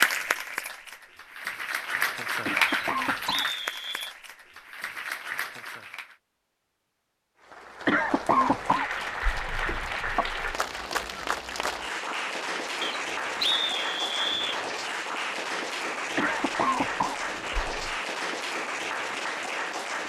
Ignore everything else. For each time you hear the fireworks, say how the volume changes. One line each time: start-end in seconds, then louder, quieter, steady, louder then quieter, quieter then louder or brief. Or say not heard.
not heard.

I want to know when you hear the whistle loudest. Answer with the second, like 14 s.
14 s.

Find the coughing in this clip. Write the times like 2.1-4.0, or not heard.
2.5-3.5, 7.8-10.6, 16.1-17.9.